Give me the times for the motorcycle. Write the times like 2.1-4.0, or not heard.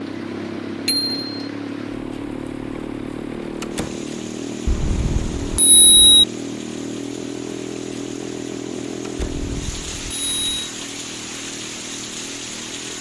0.0-12.9.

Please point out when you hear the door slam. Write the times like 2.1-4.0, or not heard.
3.6-4.0, 9.0-9.4.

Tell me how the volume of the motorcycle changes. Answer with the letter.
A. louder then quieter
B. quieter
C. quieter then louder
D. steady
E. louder
B.